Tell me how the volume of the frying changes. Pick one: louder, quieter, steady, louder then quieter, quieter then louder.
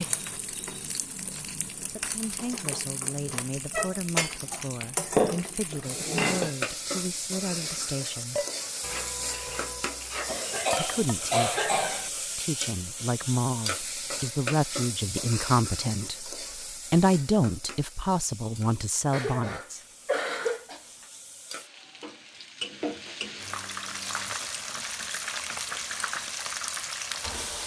quieter then louder.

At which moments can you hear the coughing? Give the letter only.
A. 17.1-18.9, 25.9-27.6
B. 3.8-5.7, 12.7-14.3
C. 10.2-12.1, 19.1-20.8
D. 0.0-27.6
C.